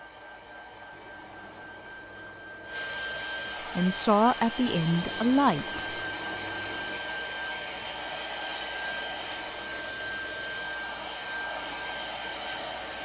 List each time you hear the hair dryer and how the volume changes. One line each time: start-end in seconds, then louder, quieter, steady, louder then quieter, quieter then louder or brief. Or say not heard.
0.0-13.0 louder.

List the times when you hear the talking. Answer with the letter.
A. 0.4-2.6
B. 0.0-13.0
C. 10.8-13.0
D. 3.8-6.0
D.